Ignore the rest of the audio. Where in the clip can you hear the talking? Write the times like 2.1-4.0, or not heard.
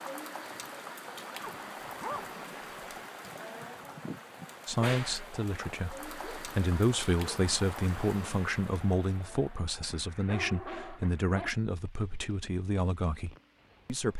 4.7-14.1.